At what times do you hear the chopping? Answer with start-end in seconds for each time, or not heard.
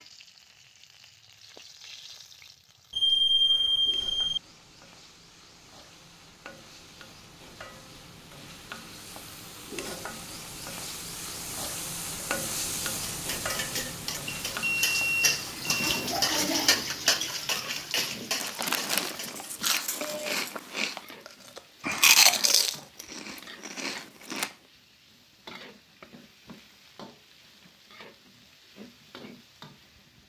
not heard.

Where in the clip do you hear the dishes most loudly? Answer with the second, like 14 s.
17 s.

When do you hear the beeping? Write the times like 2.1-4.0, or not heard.
2.9-4.4, 14.2-16.1, 21.8-22.6.